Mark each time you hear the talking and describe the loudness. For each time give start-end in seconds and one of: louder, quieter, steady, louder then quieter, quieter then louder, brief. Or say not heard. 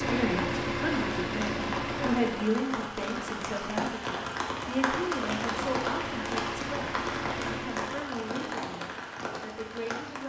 0.0-10.2 quieter.